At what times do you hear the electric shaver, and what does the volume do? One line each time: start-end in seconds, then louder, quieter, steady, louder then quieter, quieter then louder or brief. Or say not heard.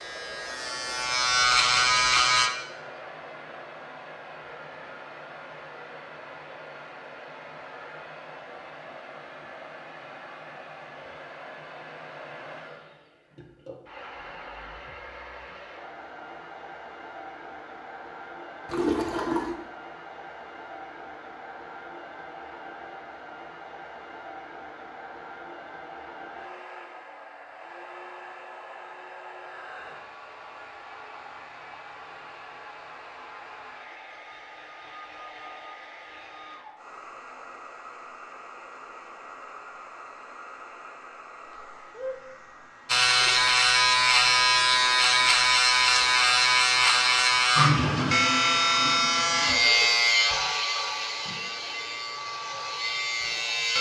0.0-2.5 brief
42.9-53.7 quieter.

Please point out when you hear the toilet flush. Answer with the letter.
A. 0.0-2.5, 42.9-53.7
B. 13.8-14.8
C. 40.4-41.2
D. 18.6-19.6
D.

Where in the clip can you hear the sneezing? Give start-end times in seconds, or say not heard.
not heard.